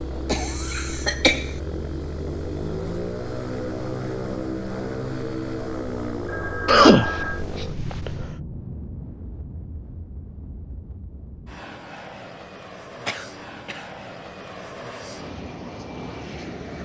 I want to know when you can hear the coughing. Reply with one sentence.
You can hear the coughing from 0.2 to 1.5 s, from 6.7 to 8.3 s and from 13.1 to 13.8 s.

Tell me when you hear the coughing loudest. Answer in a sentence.
The volume of the coughing peaks at 7 seconds.